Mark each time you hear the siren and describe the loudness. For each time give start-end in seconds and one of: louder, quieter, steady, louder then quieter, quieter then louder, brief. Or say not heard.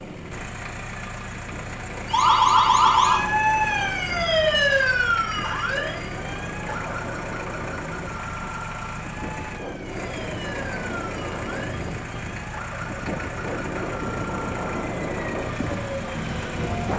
2.0-16.8 quieter.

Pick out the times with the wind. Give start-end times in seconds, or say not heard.
0.0-16.9.